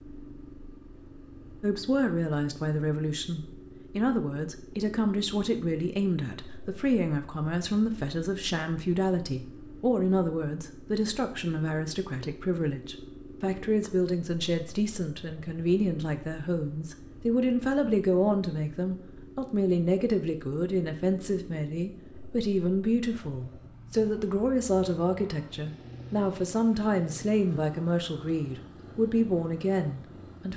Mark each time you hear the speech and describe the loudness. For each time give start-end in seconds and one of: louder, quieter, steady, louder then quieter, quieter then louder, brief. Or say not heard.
1.6-30.5 steady.